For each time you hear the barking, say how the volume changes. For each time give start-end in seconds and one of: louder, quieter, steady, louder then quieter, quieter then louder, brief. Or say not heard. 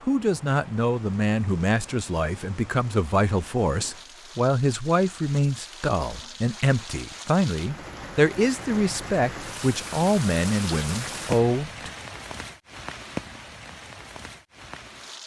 not heard.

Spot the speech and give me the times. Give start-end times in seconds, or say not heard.
0.0-11.9.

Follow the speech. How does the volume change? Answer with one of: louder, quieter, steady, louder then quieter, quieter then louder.
steady.